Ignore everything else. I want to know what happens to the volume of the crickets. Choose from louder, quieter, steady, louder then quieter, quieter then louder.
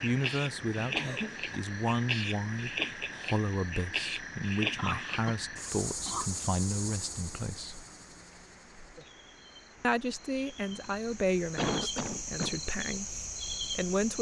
quieter then louder.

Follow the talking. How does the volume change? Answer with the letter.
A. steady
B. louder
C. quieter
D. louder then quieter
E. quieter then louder
A.